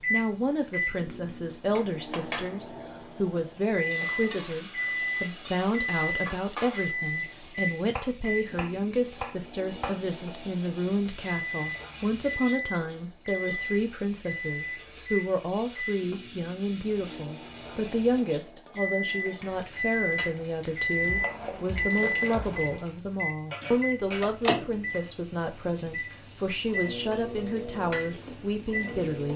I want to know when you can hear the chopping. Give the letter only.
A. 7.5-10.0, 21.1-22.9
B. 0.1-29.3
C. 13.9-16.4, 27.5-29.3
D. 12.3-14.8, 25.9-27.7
A.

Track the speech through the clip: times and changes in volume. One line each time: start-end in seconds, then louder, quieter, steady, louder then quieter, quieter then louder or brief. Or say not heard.
0.1-29.3 steady.